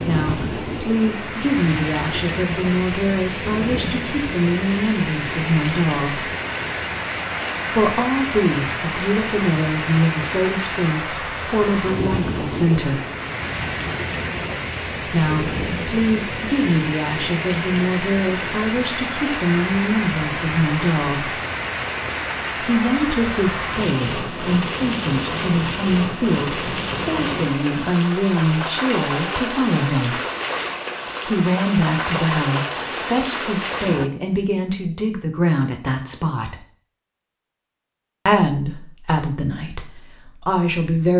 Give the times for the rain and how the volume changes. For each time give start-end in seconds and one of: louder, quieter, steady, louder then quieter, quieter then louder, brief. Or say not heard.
0.0-34.1 steady.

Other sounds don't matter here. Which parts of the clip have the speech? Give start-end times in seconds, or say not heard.
0.0-6.3, 7.7-13.0, 15.1-21.4, 22.6-30.2, 31.2-36.5, 38.2-41.1.